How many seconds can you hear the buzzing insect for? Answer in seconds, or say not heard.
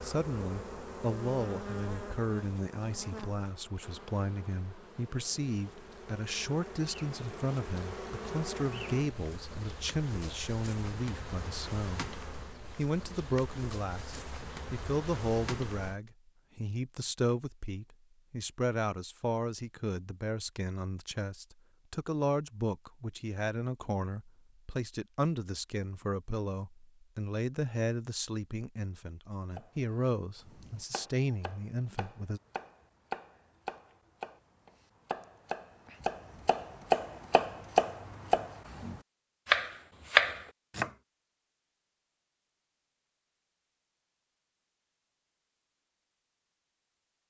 16 s.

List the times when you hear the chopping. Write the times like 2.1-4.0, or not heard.
29.6-40.9.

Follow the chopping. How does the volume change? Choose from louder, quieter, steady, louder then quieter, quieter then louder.
louder.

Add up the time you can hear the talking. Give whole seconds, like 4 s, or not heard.
32 s.